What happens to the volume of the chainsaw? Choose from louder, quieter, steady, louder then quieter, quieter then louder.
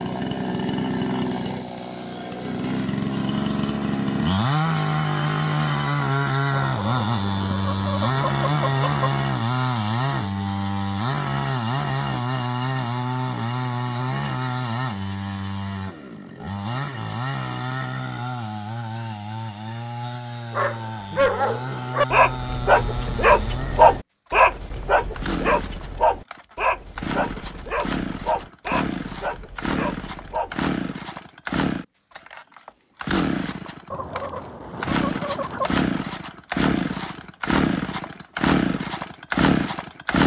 quieter then louder.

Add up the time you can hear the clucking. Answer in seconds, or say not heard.
4 s.